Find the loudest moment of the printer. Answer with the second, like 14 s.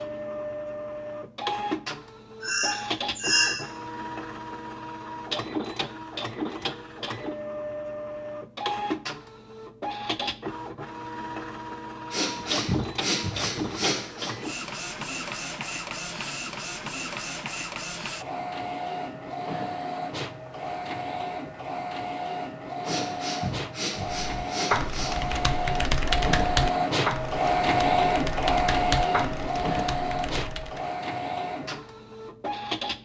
28 s.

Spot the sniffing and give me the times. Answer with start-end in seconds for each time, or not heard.
2.4-3.5, 12.1-14.3, 22.9-25.1.